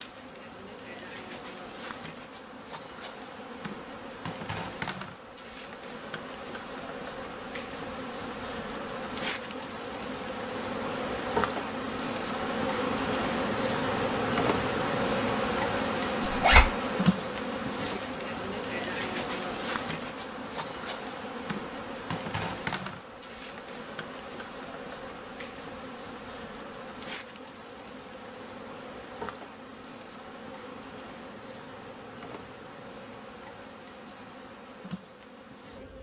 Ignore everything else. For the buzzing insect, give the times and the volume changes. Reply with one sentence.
The buzzing insect can be heard from 0.0 to 35.9 s, getting louder then quieter.